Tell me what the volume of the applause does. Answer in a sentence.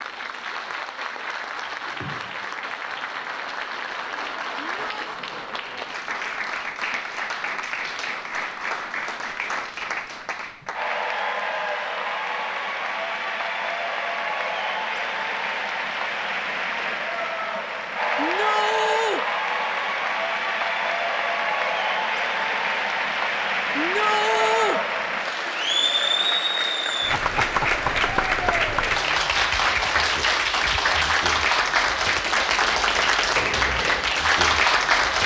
The volume of the applause goes up.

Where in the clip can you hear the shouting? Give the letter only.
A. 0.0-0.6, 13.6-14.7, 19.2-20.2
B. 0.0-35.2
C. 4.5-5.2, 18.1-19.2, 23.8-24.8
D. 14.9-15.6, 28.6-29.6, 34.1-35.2
C.